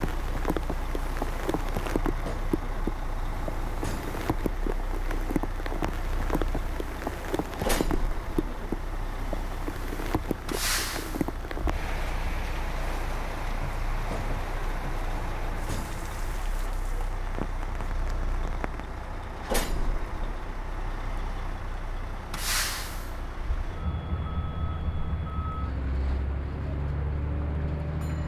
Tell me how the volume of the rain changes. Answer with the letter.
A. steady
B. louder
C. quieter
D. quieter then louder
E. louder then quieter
C.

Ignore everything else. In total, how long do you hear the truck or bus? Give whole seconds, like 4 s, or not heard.
28 s.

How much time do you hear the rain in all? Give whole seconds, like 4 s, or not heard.
28 s.